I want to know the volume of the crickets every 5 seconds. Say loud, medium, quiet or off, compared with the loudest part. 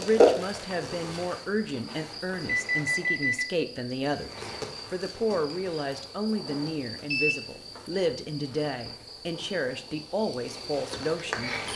loud, quiet, medium.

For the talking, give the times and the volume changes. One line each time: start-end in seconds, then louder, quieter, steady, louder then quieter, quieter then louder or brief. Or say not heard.
0.0-11.6 steady.